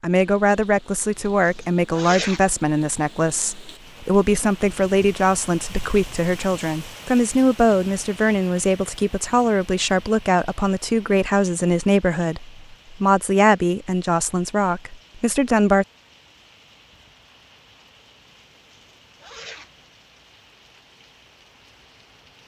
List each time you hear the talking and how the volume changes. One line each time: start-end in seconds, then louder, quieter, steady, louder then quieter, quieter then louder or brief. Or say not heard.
0.0-15.8 steady.